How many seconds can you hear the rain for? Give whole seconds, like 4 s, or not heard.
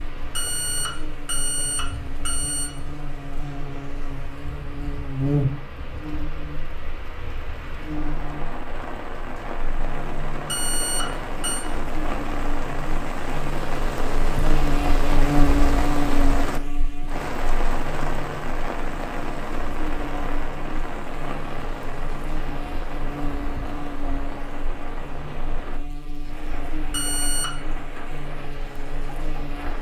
30 s.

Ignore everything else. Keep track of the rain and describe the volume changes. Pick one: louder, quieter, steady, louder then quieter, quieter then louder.
louder then quieter.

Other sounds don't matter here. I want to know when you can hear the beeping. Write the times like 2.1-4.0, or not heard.
0.3-2.7, 10.4-11.7, 26.9-27.6.